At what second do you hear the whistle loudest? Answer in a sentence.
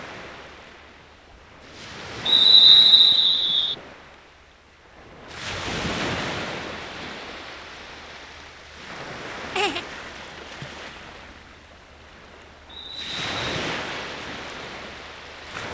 The loudest moment of the whistle is at 3 seconds.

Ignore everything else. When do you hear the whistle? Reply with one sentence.
You can hear the whistle from 2.2 to 3.8 s and from 12.7 to 13.3 s.